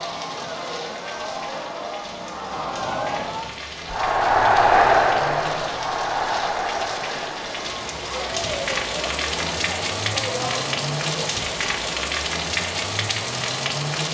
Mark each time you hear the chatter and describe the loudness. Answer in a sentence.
The chatter can be heard from 0.0 to 11.2 s, getting louder then quieter.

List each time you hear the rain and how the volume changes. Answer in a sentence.
You can hear the rain from 0.0 to 14.0 s, getting louder.